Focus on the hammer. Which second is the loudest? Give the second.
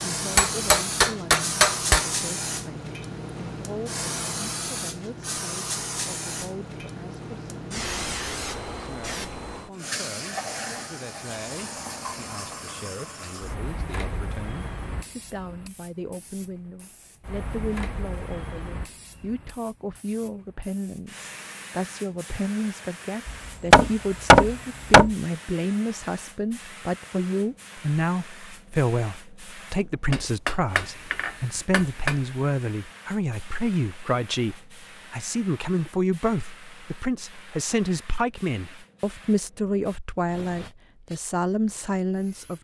24 s.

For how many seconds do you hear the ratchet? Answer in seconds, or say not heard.
not heard.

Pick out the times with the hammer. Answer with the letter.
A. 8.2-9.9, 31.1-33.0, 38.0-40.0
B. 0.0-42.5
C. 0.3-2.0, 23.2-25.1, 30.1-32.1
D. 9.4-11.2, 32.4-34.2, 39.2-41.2
C.